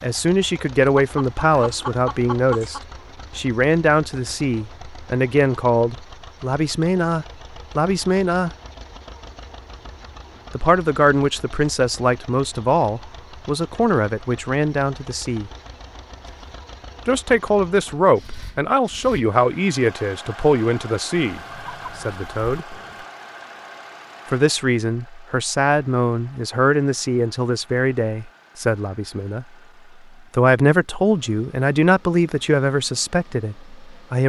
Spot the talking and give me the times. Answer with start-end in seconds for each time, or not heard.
0.0-8.5, 10.6-15.5, 17.1-21.4, 22.0-22.6, 24.3-29.4, 30.3-34.2.